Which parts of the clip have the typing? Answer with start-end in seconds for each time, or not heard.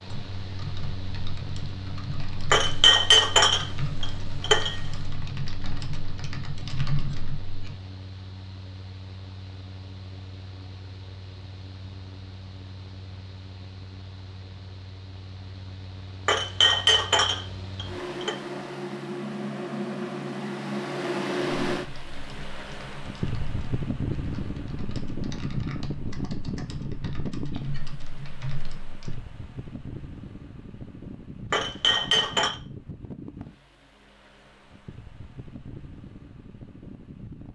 0.1-7.8, 21.8-29.2.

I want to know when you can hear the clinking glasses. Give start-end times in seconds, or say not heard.
2.5-4.8, 16.2-18.4, 31.5-32.5.